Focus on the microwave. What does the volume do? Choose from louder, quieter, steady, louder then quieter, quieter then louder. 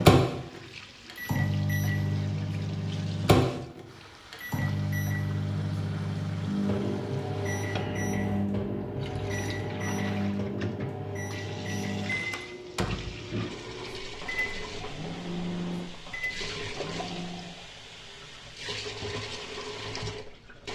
quieter.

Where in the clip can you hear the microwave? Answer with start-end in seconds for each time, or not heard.
0.0-17.6.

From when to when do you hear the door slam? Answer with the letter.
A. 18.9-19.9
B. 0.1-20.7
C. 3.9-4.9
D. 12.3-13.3
D.